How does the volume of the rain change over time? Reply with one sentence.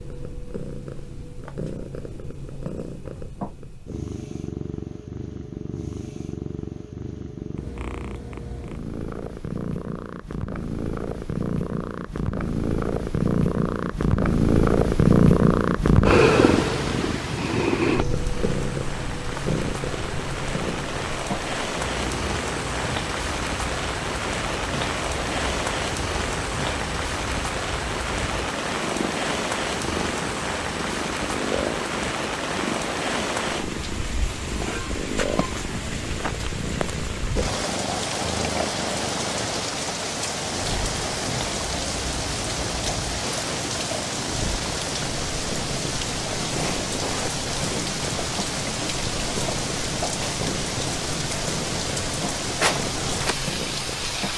The loudness of the rain stays about the same.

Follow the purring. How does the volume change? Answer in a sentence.
The volume of the purring goes up, then down.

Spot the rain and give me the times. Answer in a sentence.
The rain can be heard from 17.9 to 54.3 s.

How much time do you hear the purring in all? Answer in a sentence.
The purring can be heard for 54 seconds in total.